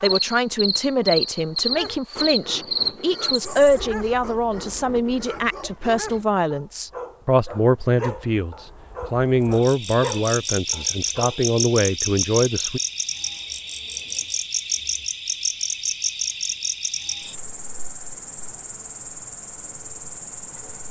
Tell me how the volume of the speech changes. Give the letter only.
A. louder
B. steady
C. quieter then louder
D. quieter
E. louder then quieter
B.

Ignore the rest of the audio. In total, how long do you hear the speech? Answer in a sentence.
You can hear the speech for 13 seconds altogether.